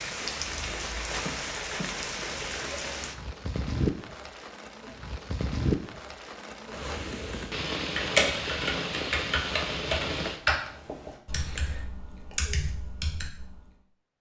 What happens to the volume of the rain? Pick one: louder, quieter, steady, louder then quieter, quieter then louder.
steady.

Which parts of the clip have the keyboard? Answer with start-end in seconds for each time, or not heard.
7.8-13.8.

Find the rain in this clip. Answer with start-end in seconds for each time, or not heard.
0.0-10.4.